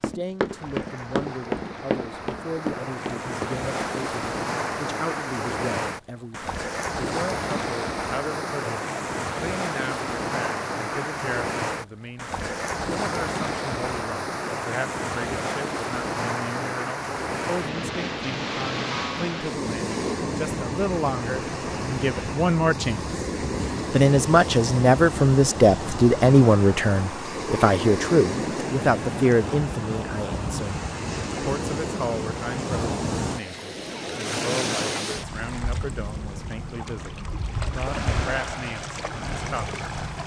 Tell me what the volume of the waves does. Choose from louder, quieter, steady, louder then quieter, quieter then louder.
steady.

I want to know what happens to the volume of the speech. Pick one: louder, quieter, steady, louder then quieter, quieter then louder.
louder then quieter.